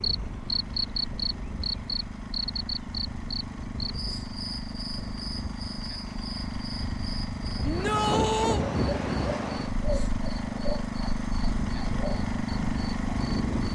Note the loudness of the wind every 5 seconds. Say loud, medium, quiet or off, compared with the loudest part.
medium, loud, loud.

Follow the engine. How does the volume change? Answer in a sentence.
The loudness of the engine goes up.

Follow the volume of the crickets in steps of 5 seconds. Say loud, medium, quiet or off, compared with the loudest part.
loud, medium, medium.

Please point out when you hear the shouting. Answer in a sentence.
The shouting can be heard from 7.6 to 8.7 s.